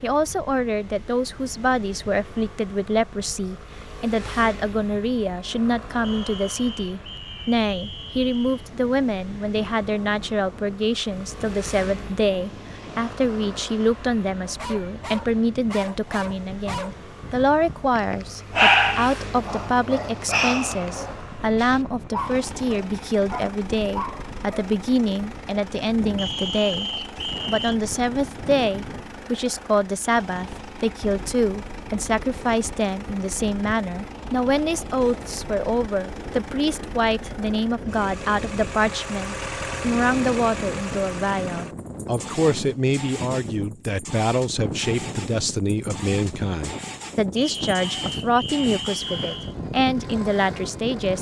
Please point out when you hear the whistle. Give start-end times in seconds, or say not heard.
6.0-8.7, 26.1-27.8, 47.4-49.5.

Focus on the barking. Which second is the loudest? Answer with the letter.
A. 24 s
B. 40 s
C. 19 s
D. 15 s
C.